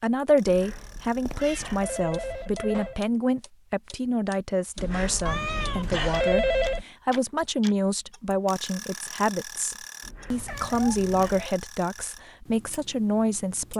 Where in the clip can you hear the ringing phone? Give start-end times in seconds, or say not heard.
0.5-3.0, 4.8-6.8, 10.0-11.6.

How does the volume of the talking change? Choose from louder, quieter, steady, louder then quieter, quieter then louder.
steady.